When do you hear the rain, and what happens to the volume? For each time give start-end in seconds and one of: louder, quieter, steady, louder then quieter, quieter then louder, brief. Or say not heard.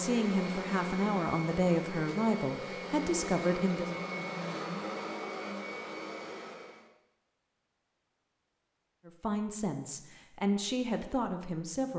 not heard.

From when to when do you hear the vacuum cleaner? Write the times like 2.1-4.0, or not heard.
0.0-6.9.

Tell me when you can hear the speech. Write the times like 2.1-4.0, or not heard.
0.0-3.9, 9.1-11.9.